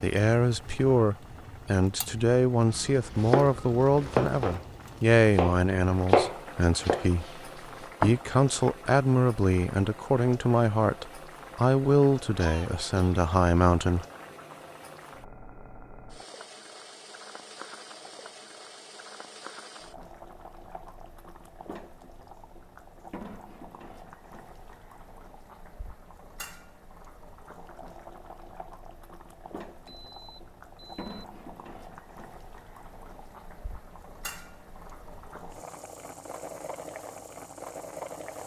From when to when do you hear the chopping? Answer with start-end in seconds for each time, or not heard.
3.1-4.6, 5.3-8.8.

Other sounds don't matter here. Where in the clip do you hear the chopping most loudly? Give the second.
6 s.